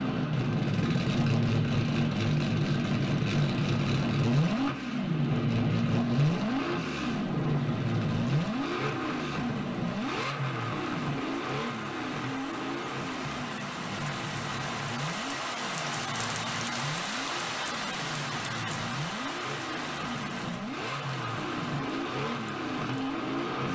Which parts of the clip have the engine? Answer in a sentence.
You can hear the engine from 0.0 to 23.7 s.